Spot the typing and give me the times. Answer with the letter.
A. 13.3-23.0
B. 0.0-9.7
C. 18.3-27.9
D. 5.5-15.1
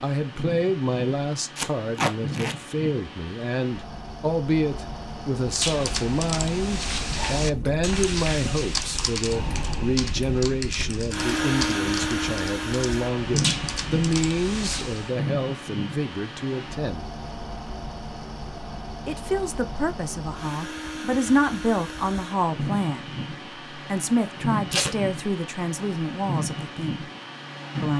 D.